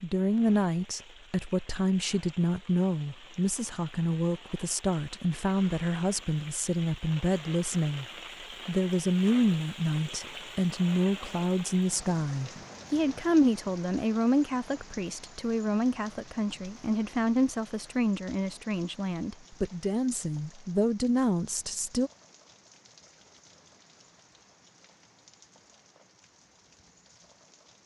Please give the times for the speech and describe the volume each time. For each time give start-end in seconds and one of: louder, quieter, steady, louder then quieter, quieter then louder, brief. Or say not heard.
0.0-8.1 steady
8.7-22.1 steady.